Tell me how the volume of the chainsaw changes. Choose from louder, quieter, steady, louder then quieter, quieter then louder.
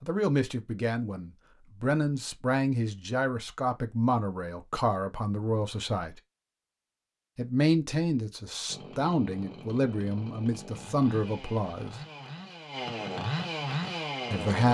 louder.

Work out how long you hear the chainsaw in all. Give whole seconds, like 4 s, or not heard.
6 s.